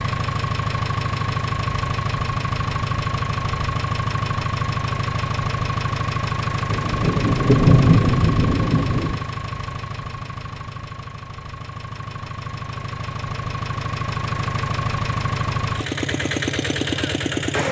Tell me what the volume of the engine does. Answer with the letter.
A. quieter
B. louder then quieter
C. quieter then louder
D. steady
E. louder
C.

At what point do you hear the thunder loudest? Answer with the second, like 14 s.
8 s.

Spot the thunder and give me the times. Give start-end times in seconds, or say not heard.
6.7-9.2.